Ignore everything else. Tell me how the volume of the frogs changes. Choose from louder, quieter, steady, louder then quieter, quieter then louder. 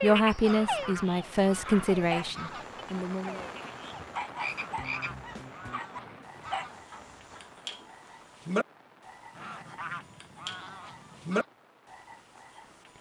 quieter then louder.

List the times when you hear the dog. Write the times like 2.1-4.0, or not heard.
0.2-0.8, 1.6-7.5.